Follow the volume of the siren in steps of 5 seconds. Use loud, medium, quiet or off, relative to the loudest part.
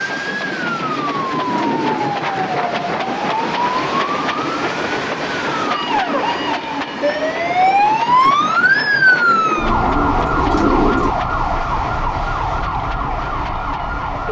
medium, loud, medium.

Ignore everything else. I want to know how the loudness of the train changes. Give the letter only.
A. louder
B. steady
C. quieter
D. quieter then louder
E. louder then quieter
C.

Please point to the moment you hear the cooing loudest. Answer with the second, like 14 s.
11 s.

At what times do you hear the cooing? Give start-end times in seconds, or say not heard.
0.1-2.1, 9.1-11.2.